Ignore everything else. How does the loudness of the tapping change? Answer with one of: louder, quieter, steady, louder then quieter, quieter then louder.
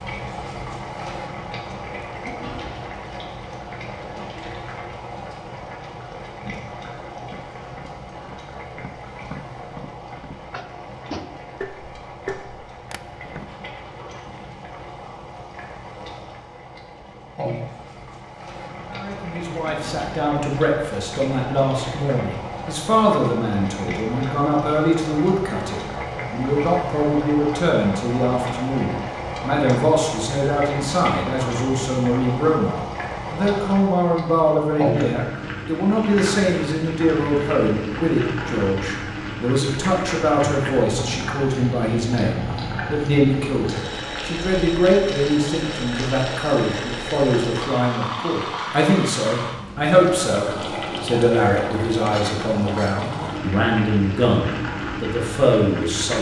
louder.